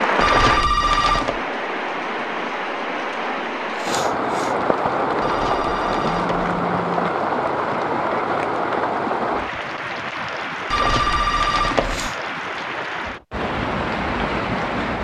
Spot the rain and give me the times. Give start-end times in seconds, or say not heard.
0.0-14.9.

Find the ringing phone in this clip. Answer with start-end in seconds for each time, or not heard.
0.2-1.4, 5.2-6.4, 10.7-12.1.